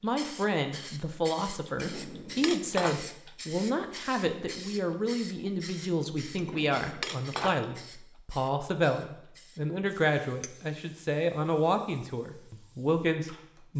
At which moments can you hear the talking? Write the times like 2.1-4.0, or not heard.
0.0-13.7.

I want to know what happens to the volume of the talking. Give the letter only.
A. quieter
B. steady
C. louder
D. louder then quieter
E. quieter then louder
B.